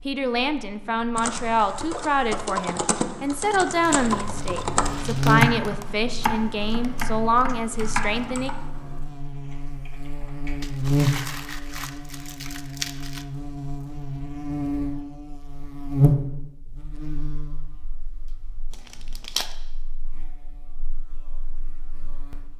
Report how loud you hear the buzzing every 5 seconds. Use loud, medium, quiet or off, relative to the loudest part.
quiet, loud, loud, loud, quiet.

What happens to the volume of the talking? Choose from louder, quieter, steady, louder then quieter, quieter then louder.
steady.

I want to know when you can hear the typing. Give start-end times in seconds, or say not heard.
1.1-10.8.